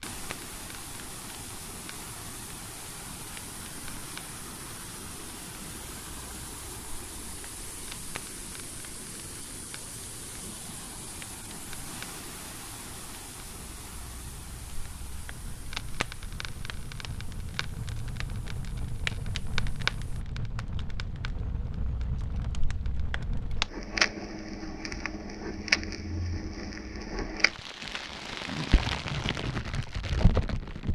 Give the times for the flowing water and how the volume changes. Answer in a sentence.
You can hear the flowing water from 0.0 to 20.2 s, getting quieter.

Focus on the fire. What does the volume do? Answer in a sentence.
The volume of the fire goes up.